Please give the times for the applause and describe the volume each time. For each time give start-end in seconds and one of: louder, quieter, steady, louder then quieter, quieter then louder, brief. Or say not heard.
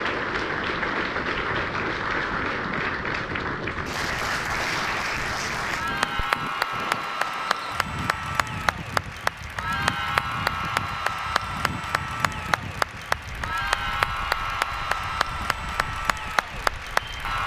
0.0-17.4 steady.